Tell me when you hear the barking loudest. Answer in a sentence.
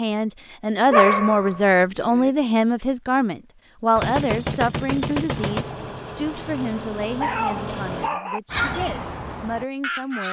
The loudest moment of the barking is at 1 second.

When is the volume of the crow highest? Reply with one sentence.
The volume of the crow peaks at 9 seconds.